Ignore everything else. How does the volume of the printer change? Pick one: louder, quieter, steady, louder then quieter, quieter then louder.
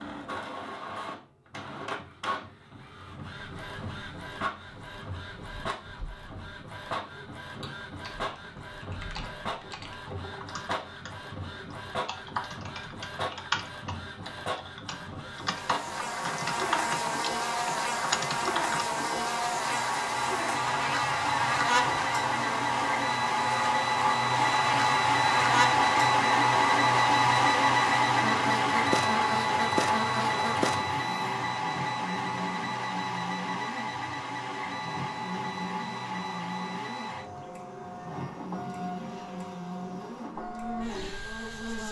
louder then quieter.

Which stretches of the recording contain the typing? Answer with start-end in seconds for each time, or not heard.
7.6-18.9.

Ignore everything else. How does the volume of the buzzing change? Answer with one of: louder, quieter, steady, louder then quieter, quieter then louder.
quieter.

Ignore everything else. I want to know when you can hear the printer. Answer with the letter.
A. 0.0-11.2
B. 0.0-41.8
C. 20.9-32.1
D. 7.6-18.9
B.